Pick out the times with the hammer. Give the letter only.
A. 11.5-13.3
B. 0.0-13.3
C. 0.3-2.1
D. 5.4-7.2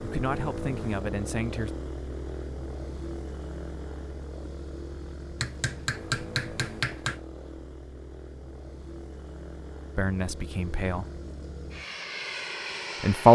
D.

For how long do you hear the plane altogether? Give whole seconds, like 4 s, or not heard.
13 s.